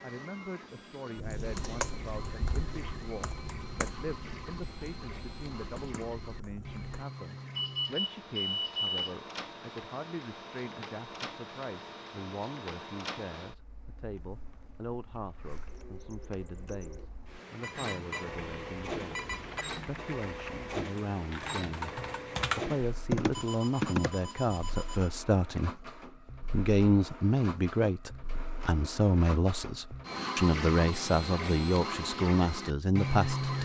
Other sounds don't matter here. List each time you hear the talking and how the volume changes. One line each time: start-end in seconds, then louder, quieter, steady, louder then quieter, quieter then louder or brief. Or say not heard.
0.0-33.6 louder.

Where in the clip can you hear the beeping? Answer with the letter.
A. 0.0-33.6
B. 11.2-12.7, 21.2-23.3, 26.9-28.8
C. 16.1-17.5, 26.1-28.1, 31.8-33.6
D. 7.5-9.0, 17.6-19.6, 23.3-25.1
D.